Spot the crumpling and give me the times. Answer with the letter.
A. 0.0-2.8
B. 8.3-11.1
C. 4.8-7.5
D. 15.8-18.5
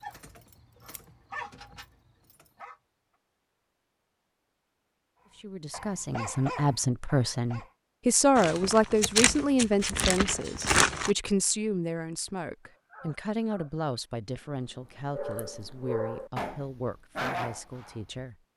B.